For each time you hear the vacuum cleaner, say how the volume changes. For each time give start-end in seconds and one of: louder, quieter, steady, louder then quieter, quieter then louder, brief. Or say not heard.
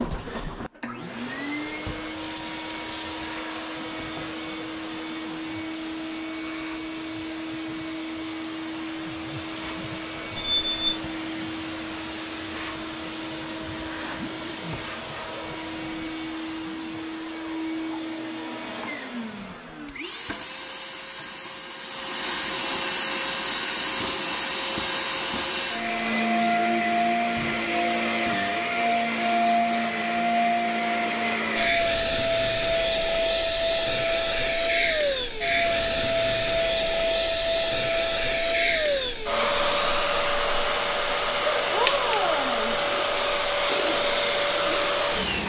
0.0-45.4 louder.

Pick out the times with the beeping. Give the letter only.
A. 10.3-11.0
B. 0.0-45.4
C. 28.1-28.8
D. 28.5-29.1
A.